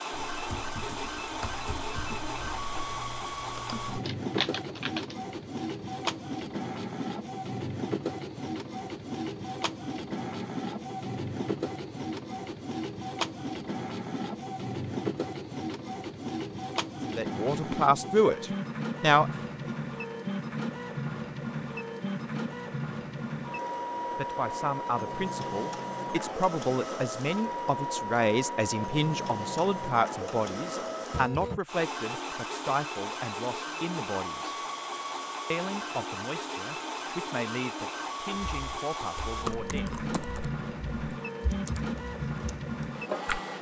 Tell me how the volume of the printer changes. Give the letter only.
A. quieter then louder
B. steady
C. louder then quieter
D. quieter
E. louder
B.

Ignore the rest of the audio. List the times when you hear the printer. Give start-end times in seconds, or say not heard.
0.0-43.5.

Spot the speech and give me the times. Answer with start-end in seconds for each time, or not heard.
17.1-19.7, 24.1-34.5, 35.5-40.0.